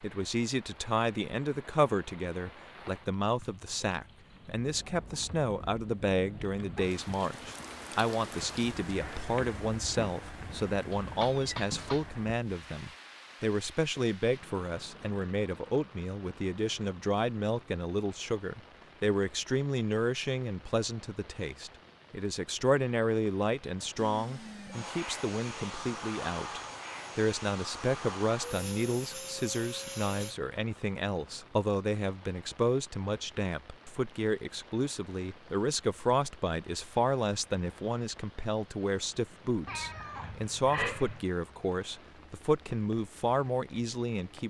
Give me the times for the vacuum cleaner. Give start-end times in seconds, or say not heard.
23.9-30.4.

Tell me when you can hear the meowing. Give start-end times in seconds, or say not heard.
10.9-12.1, 39.6-41.2.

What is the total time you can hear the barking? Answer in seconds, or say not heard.
not heard.